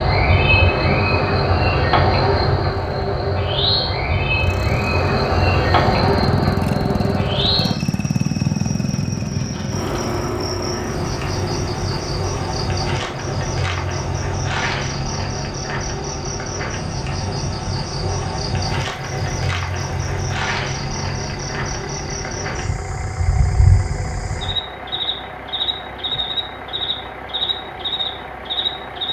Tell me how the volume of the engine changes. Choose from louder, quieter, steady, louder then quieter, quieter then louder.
quieter.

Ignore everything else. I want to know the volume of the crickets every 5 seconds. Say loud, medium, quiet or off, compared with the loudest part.
loud, loud, medium, medium, medium, medium.